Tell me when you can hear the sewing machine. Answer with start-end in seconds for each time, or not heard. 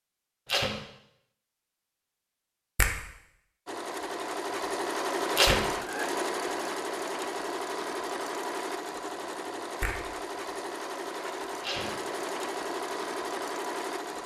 3.6-14.2.